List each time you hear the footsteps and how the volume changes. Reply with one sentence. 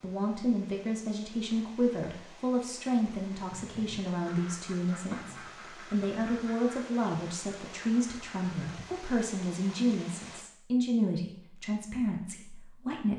You can't hear the footsteps here.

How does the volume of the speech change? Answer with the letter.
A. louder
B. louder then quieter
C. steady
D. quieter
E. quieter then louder
C.